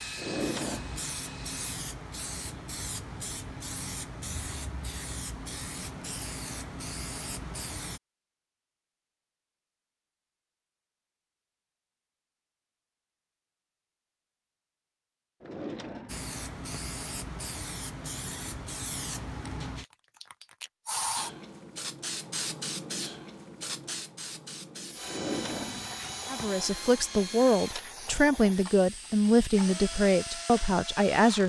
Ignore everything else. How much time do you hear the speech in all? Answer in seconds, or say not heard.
5 s.